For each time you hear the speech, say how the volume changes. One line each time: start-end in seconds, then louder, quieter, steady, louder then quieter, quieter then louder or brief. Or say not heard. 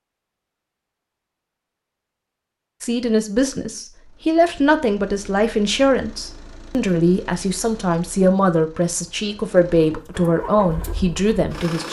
2.8-11.8 steady.